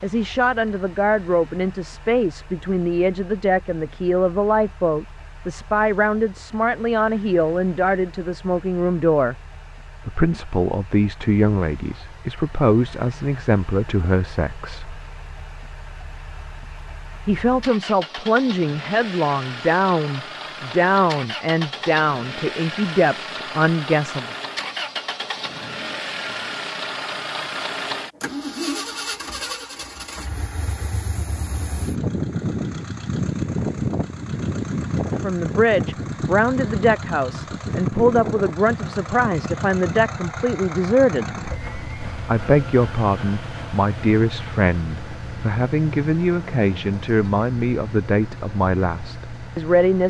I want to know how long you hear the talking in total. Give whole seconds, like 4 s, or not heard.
35 s.